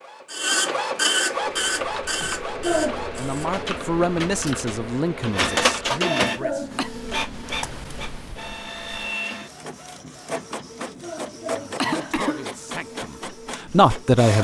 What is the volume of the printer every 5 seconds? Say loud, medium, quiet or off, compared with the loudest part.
loud, loud, medium.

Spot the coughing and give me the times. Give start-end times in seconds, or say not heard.
2.2-3.0, 5.5-6.9, 11.0-12.6.